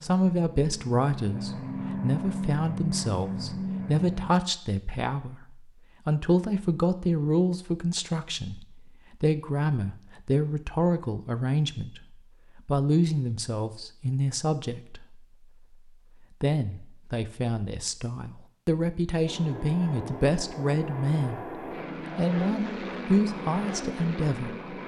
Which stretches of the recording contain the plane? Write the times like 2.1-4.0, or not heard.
0.0-4.3, 19.2-24.8.